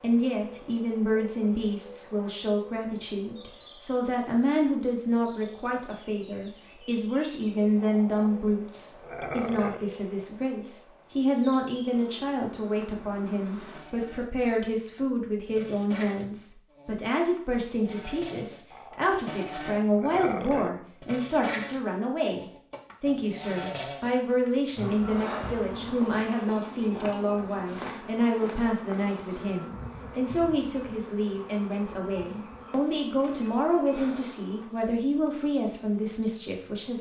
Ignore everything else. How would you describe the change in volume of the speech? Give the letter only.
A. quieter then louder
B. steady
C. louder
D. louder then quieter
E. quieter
B.